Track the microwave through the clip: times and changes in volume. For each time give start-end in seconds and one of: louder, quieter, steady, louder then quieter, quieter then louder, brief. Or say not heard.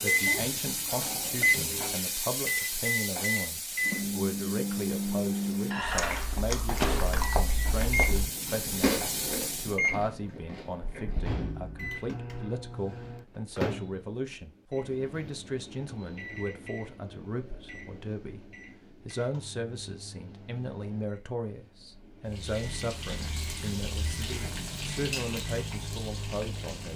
0.0-26.9 quieter.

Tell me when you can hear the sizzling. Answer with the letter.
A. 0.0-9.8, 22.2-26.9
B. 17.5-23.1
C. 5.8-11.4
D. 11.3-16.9
A.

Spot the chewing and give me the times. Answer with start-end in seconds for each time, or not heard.
5.8-11.4.